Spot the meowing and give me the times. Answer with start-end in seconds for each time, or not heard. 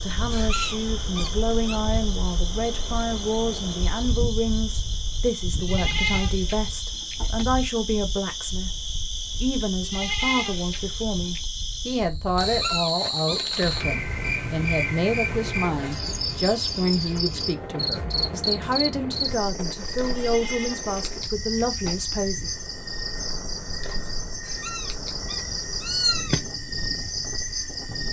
0.3-1.8, 12.4-13.4, 24.5-26.4.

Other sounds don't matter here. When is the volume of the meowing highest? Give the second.
26 s.